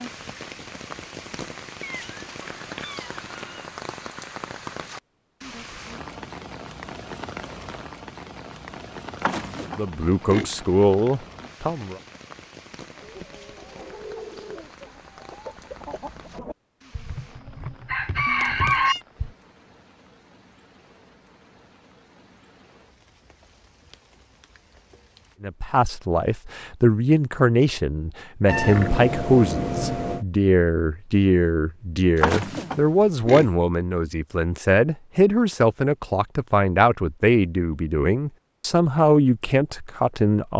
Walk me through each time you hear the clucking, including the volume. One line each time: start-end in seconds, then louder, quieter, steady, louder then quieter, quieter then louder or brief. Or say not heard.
12.9-19.3 louder.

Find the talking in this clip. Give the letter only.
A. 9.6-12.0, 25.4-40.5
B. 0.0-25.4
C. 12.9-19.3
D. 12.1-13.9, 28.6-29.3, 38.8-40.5
A.